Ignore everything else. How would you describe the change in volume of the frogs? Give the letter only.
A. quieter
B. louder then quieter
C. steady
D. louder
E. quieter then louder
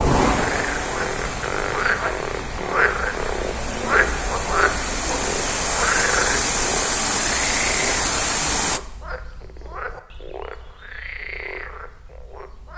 A.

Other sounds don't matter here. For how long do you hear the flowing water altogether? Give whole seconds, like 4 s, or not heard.
9 s.